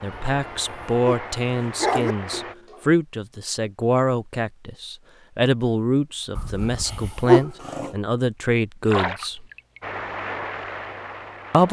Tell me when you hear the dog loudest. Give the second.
7 s.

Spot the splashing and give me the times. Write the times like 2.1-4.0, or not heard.
2.3-3.0, 8.8-9.8.